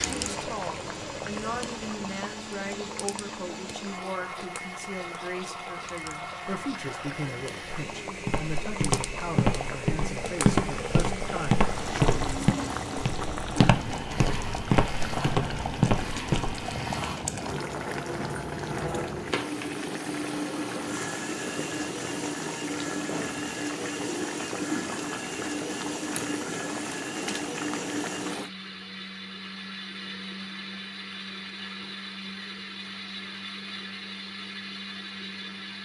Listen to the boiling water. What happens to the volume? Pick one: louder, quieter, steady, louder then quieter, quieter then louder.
louder.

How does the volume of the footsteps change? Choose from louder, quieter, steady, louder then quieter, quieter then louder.
steady.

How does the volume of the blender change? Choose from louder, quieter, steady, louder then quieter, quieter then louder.
steady.